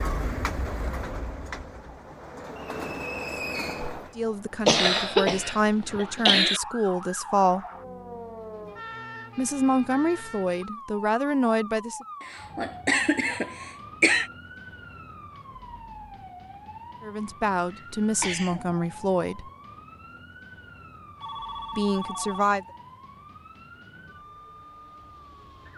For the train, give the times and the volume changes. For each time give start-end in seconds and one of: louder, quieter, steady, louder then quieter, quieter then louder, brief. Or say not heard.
0.0-4.2 quieter then louder.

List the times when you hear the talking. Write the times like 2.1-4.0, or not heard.
4.2-7.7, 9.3-12.1, 17.0-19.5, 21.8-22.6.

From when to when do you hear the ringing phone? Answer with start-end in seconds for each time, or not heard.
21.2-22.6.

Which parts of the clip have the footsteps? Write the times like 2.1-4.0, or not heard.
not heard.